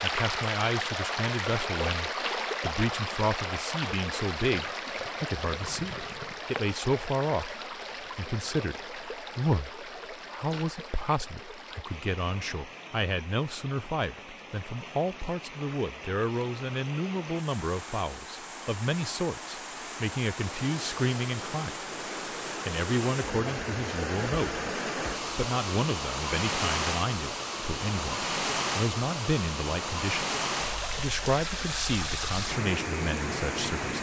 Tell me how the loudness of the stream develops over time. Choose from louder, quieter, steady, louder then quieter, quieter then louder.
quieter then louder.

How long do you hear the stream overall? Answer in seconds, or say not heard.
34 s.